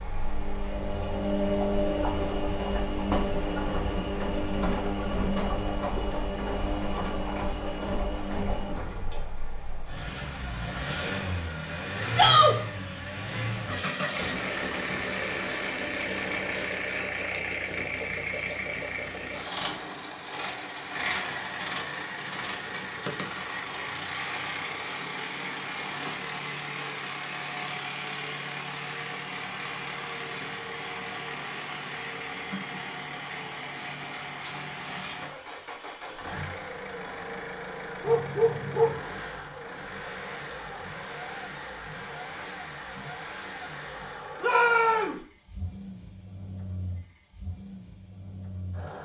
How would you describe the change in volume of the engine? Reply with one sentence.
The loudness of the engine goes down.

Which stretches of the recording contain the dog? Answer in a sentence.
The dog can be heard from 38.0 to 39.0 s.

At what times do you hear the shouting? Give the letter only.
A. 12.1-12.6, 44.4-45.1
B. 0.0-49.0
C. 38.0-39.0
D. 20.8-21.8
A.